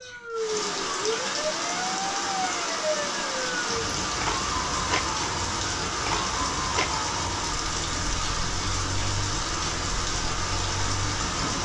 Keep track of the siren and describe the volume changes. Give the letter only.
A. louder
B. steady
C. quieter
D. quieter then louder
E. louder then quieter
C.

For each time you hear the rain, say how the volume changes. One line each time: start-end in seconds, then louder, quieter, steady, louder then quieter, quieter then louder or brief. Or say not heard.
0.0-11.6 steady.